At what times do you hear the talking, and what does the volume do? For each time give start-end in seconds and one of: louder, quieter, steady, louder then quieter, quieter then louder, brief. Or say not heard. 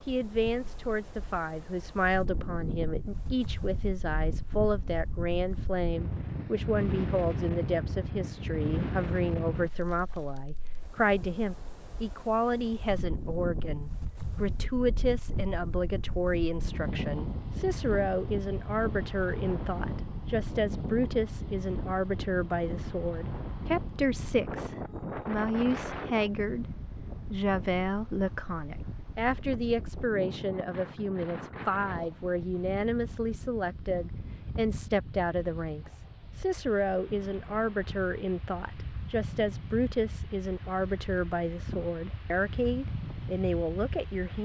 0.1-26.6 steady
27.3-44.3 steady.